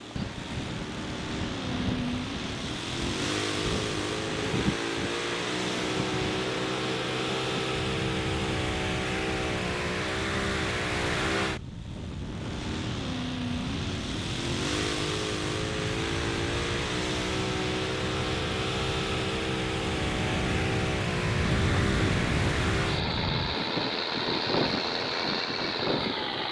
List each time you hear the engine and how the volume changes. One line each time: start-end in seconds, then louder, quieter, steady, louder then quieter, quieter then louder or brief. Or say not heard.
0.0-26.4 steady.